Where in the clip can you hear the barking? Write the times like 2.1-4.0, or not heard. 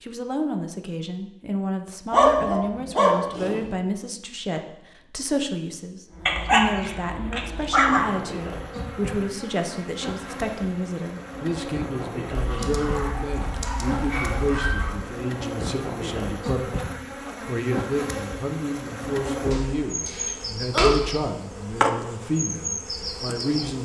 2.1-3.7, 6.2-8.2, 12.3-15.0, 19.5-21.1.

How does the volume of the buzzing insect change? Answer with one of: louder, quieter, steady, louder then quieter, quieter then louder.
louder.